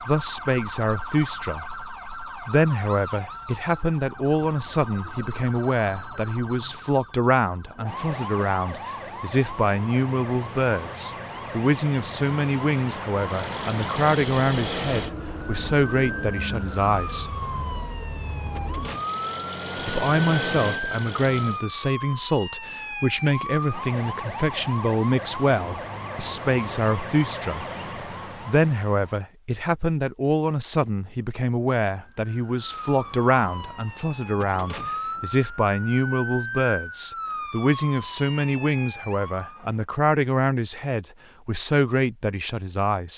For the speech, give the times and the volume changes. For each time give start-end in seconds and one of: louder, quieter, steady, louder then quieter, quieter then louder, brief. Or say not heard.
0.1-1.6 brief
2.5-17.4 steady
19.9-27.6 steady
28.4-43.1 steady.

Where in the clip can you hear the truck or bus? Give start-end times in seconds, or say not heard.
13.2-21.6.